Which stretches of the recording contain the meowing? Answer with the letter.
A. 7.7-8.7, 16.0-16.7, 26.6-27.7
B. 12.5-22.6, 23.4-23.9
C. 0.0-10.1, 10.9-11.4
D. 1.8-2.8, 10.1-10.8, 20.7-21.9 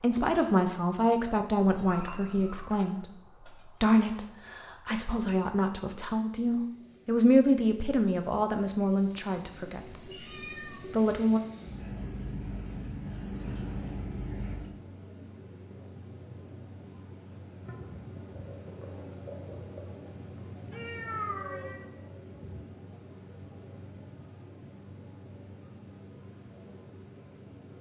D.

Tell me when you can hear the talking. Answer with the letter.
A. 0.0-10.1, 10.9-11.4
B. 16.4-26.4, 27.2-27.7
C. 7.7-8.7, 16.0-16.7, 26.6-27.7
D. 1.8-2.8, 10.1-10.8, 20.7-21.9
A.